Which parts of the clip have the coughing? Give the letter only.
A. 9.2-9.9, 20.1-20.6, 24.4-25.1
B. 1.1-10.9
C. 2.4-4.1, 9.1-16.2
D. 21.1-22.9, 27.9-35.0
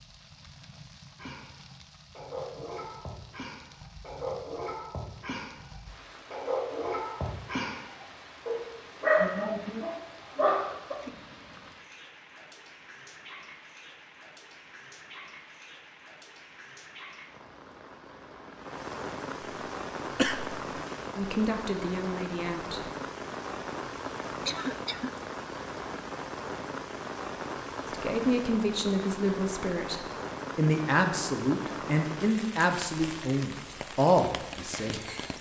A.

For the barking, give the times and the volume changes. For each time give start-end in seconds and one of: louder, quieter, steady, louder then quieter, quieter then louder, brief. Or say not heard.
1.1-10.9 louder.